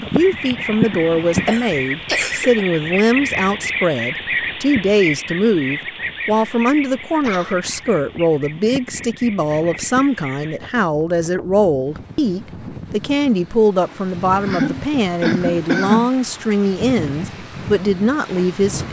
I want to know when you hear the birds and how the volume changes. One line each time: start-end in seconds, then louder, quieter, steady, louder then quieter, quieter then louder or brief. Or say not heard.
0.0-10.6 quieter.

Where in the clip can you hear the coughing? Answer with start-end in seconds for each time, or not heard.
1.4-2.6, 6.3-7.8, 14.3-16.1.